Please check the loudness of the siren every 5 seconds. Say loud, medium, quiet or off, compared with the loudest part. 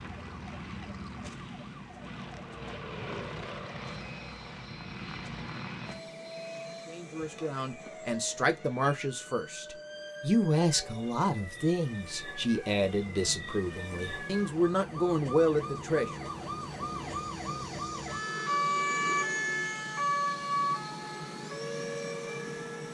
quiet, quiet, medium, loud, loud.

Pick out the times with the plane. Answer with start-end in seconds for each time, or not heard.
0.0-22.8.